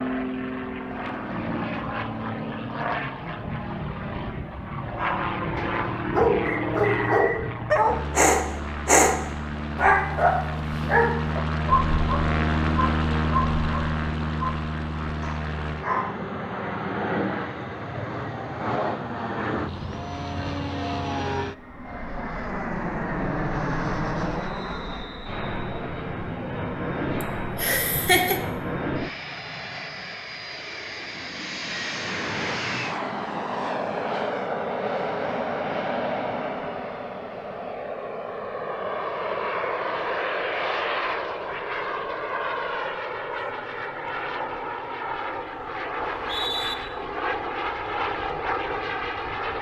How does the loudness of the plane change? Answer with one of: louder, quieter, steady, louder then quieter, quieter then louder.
steady.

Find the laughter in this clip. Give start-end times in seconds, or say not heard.
27.2-28.4.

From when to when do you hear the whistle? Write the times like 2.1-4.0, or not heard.
6.5-7.4, 24.4-25.9, 46.0-46.8.